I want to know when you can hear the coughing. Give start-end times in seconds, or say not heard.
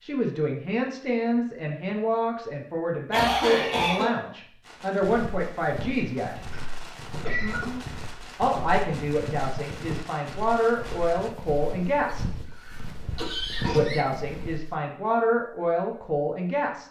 3.1-4.2, 6.5-7.8, 12.1-14.1.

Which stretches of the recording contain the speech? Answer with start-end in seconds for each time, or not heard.
0.0-6.4, 8.3-12.2, 13.7-16.8.